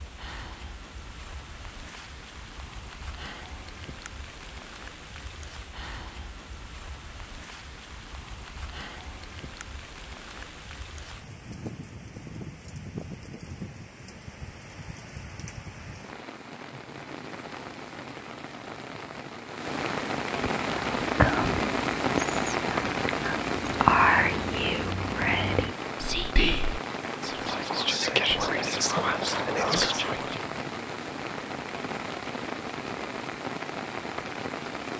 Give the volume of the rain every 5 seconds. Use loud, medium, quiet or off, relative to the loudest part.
quiet, quiet, quiet, medium, loud, medium, medium.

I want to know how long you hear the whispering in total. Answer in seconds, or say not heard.
10 s.